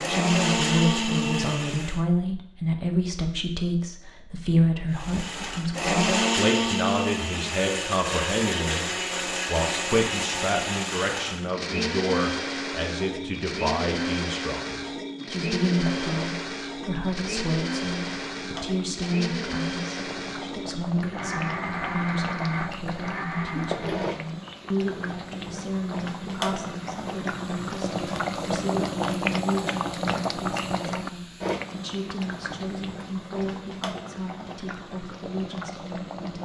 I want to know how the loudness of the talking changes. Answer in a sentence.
The loudness of the talking goes down.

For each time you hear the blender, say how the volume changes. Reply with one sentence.
The blender can be heard briefly from 0.0 to 2.0 s; and from 4.9 to 24.0 s, getting quieter.